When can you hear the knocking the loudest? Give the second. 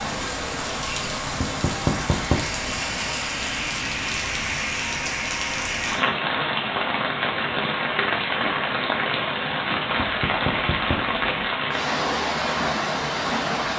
2 s.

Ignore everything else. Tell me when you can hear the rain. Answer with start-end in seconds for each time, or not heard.
0.0-13.7.